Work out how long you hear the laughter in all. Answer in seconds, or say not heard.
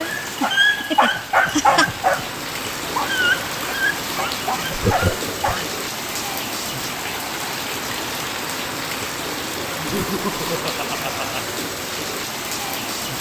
4 s.